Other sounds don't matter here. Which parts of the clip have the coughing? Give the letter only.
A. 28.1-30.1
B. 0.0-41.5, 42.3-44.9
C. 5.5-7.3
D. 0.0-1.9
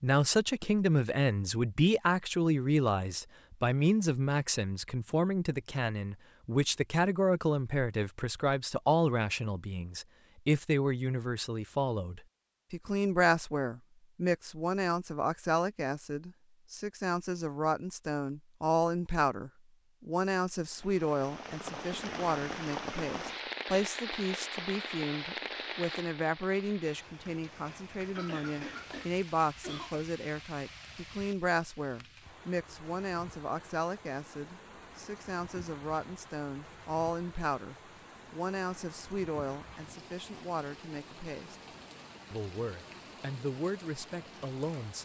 A.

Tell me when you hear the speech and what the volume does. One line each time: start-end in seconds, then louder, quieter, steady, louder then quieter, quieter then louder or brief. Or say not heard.
0.0-41.5 quieter
42.3-44.9 brief.